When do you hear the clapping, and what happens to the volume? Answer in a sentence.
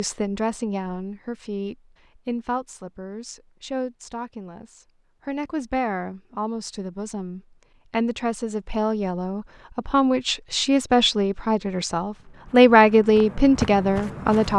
You can't hear the clapping here.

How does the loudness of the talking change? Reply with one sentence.
The volume of the talking goes up.